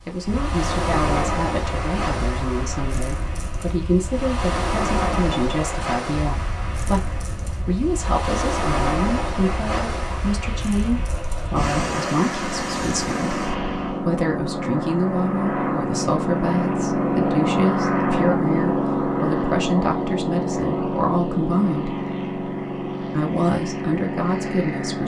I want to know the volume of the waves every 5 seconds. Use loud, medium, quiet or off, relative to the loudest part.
loud, loud, loud, off, off.